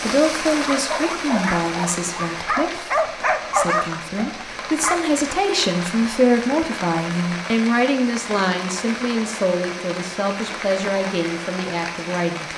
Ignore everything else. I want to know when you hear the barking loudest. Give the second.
4 s.